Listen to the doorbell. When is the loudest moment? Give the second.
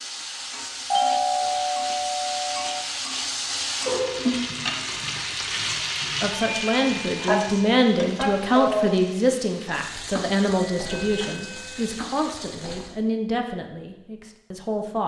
1 s.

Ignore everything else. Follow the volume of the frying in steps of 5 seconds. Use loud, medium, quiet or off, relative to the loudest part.
loud, loud, medium.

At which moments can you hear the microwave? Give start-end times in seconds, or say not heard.
not heard.